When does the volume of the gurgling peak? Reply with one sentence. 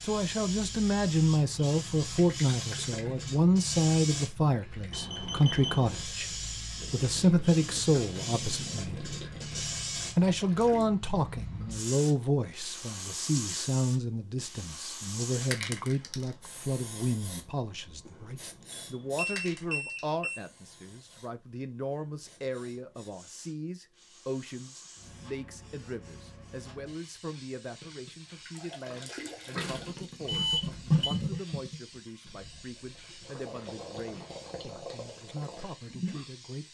The volume of the gurgling peaks at 31 seconds.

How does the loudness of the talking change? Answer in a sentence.
The loudness of the talking goes down.